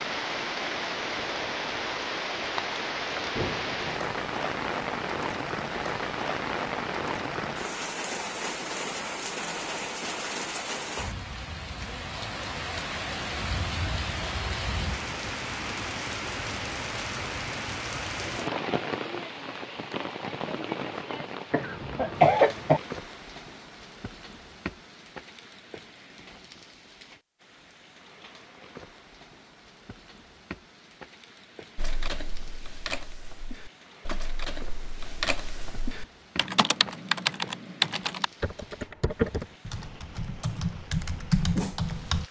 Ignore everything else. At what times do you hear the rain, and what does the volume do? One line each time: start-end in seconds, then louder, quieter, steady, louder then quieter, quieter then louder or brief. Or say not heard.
0.0-42.2 quieter.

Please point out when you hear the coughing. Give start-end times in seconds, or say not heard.
21.5-22.8.